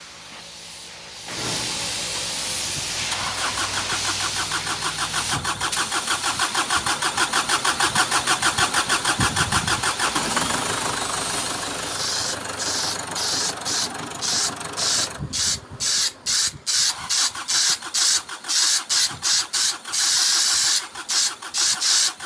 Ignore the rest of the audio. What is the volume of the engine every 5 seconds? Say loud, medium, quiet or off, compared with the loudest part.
medium, loud, medium, quiet, quiet.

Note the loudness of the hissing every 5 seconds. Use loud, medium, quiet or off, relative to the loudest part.
medium, quiet, medium, loud, loud.